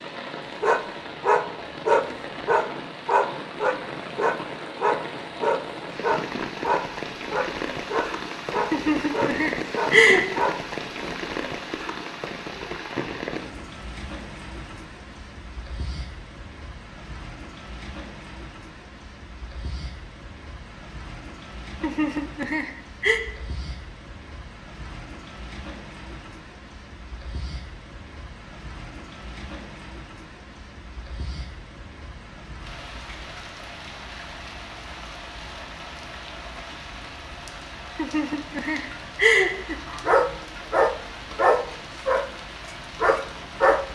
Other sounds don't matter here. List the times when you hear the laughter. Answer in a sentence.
You can hear the laughter from 8.7 to 10.2 s, from 21.8 to 23.2 s and from 38.0 to 39.8 s.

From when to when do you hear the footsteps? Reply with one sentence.
You can't hear the footsteps here.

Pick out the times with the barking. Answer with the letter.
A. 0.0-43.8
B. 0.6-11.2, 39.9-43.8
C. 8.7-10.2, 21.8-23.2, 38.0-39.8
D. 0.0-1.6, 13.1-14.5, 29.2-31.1
B.